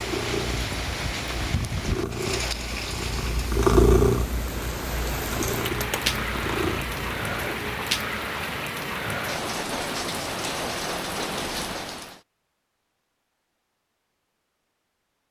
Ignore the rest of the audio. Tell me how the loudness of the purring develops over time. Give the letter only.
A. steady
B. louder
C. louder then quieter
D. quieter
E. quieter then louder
C.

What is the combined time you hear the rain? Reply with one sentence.
You can hear the rain for 12 seconds altogether.